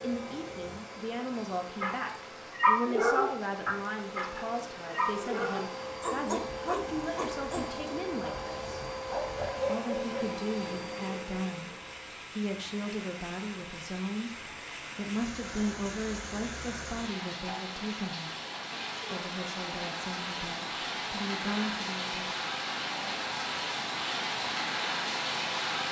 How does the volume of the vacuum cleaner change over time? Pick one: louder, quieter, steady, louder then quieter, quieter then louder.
louder.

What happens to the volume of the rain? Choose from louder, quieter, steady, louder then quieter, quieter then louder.
louder.